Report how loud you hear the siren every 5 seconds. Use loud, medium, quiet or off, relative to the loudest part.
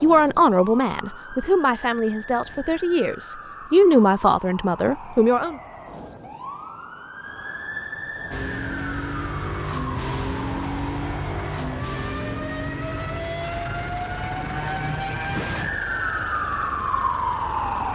quiet, medium, medium, loud.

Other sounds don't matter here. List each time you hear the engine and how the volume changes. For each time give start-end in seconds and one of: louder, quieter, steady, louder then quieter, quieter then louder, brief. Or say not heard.
8.3-17.9 quieter.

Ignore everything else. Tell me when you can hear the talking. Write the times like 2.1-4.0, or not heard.
0.0-5.5.